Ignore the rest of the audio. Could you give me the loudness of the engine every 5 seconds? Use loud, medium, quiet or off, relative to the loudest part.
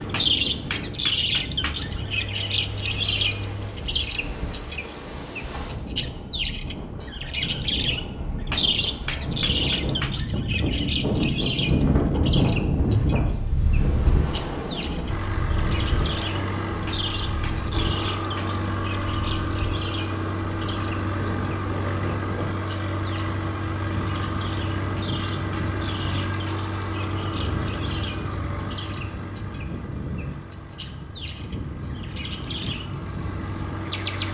medium, off, off, loud, loud, loud, medium.